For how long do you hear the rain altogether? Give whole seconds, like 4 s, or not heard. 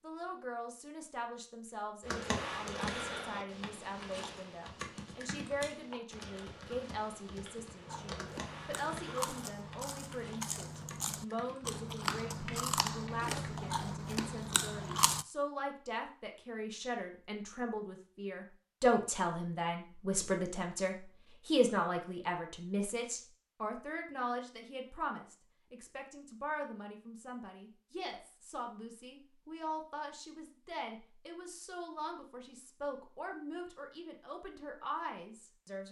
not heard.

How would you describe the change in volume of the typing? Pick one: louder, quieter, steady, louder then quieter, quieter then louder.
quieter.